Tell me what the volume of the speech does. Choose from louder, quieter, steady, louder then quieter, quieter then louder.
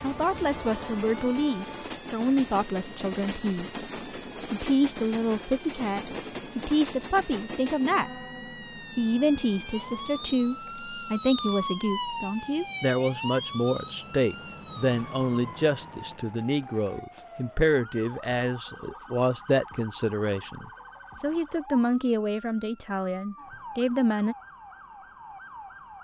steady.